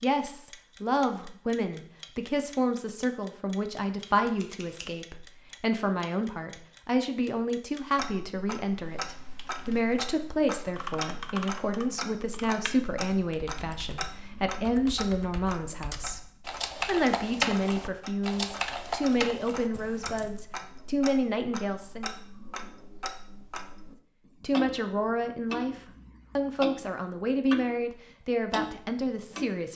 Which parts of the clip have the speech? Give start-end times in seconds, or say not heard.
0.0-22.2, 24.4-29.7.